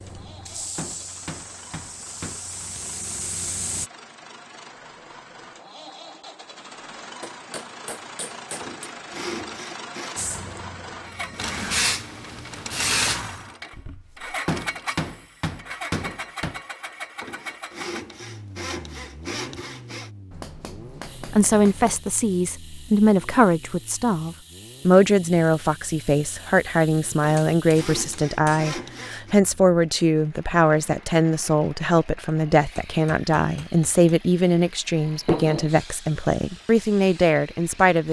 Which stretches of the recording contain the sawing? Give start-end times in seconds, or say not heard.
8.6-10.2, 17.2-20.1, 27.2-29.4.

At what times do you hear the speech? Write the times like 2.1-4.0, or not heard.
21.3-38.0.